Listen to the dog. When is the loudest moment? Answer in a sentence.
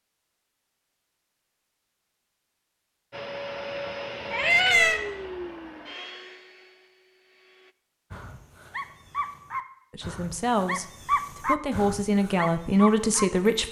The loudest moment of the dog is at 11 seconds.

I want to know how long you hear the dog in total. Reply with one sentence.
You can hear the dog for 5 seconds altogether.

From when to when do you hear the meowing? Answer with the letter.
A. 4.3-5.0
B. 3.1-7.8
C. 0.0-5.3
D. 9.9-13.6
A.